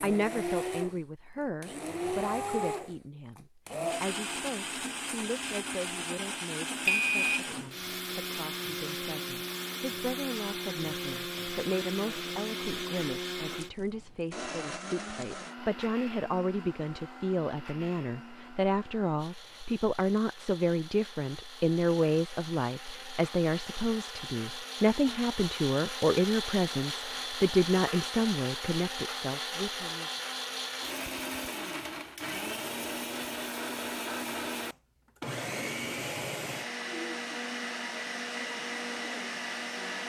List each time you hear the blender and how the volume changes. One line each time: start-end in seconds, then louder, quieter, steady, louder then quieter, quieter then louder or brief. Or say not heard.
0.0-40.0 quieter then louder.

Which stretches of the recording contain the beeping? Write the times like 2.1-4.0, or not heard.
6.8-7.4.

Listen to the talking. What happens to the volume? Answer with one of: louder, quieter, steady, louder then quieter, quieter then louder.
louder.